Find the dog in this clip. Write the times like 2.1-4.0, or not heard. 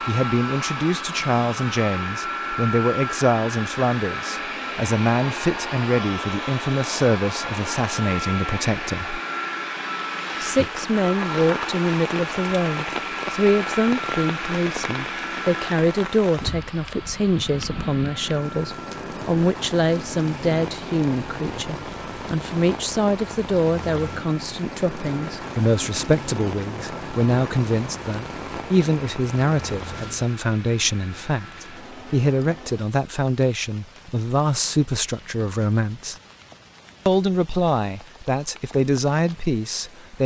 not heard.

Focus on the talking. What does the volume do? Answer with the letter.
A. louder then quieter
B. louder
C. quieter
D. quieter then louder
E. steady
E.